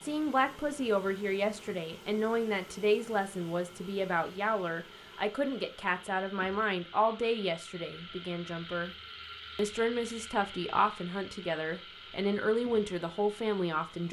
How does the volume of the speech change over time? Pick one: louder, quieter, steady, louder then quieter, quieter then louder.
steady.